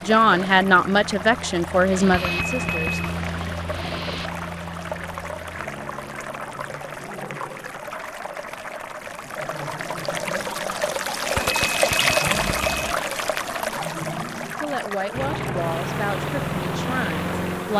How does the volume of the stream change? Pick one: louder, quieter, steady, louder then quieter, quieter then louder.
louder then quieter.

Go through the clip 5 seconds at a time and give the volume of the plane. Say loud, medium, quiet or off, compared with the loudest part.
medium, quiet, off, loud.